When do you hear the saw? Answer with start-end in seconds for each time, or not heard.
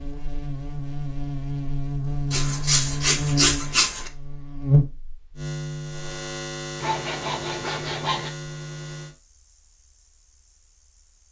2.3-4.1, 6.8-8.3.